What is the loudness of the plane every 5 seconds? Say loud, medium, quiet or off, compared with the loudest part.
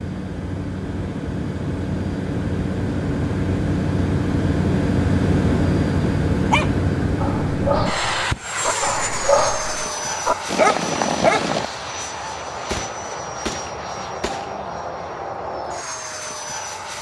loud, loud, medium, medium.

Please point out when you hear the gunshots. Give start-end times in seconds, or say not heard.
12.7-14.6.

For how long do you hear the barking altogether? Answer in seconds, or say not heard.
5 s.